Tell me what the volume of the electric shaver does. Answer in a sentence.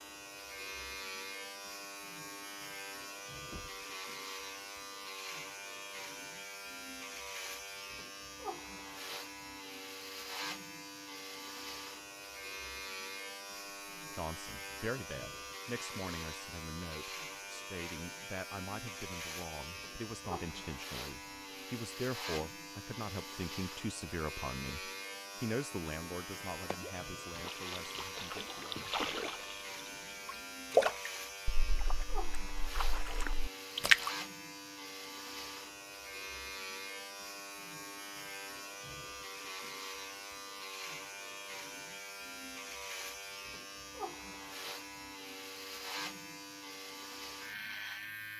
The loudness of the electric shaver stays about the same.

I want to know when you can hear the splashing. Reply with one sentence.
The splashing can be heard from 26.6 to 34.1 s.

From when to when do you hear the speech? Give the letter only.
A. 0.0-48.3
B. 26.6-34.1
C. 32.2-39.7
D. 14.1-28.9
D.